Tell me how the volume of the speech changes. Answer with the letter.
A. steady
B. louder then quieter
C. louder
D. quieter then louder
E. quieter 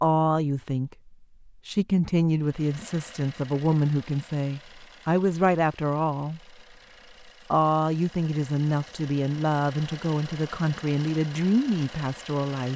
A.